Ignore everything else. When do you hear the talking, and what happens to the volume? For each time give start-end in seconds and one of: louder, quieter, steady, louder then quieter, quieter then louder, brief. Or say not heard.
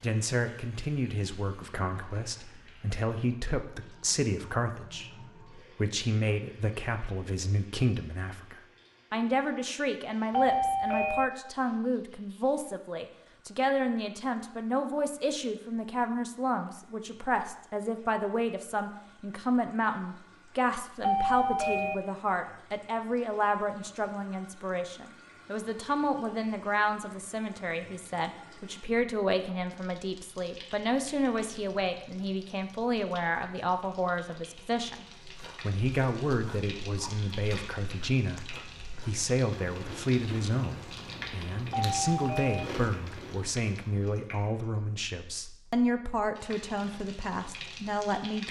0.0-48.4 steady.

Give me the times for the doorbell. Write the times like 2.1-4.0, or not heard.
10.3-11.2, 21.0-21.9, 41.7-42.6.